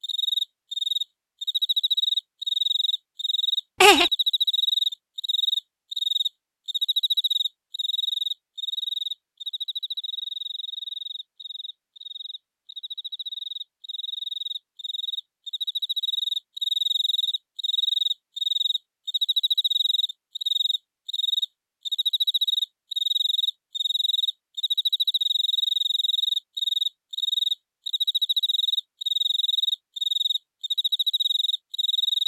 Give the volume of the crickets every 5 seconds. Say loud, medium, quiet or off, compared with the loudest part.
loud, loud, medium, loud, loud, loud, loud.